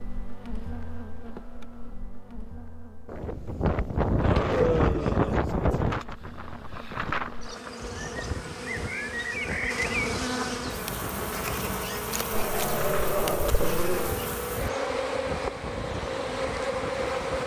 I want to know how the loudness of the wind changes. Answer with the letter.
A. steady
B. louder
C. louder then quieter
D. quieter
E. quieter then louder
D.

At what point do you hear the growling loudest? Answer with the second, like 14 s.
5 s.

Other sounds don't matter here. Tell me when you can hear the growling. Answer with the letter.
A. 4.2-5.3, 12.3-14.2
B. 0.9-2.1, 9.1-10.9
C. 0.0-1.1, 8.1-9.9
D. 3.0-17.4
A.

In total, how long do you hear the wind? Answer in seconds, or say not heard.
14 s.